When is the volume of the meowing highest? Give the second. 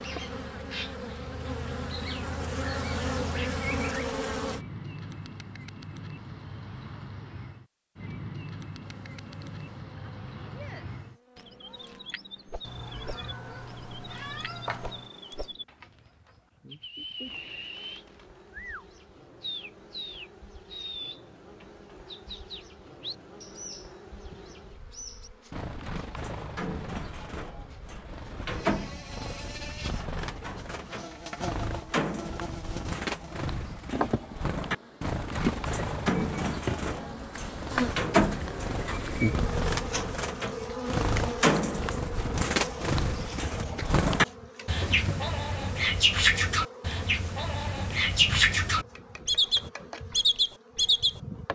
15 s.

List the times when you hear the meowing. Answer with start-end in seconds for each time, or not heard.
12.6-15.1.